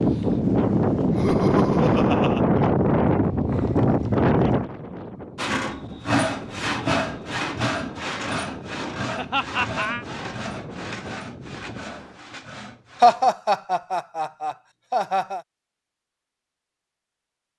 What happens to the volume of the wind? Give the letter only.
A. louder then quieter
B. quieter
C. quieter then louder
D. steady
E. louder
B.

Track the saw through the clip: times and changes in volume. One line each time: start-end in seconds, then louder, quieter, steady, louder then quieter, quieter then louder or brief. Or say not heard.
5.3-13.3 quieter.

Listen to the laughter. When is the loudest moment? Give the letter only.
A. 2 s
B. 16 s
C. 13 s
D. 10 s
C.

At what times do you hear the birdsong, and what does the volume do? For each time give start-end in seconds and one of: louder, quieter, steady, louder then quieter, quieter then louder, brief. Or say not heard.
not heard.